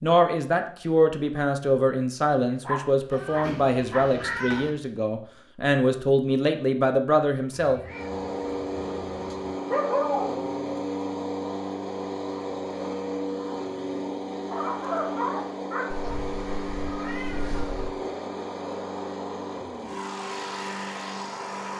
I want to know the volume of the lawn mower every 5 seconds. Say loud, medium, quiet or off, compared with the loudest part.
off, loud, loud, loud, loud.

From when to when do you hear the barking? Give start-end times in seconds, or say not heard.
2.6-4.0, 9.7-10.8, 14.5-16.2.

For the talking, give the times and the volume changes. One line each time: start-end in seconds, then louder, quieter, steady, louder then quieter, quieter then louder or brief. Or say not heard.
0.0-7.8 steady.